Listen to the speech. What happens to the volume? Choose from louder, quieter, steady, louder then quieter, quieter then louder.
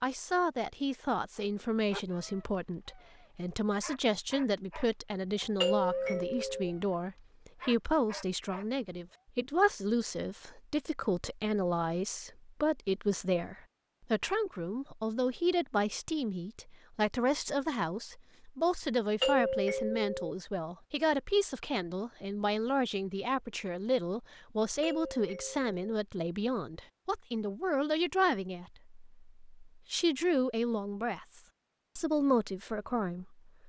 steady.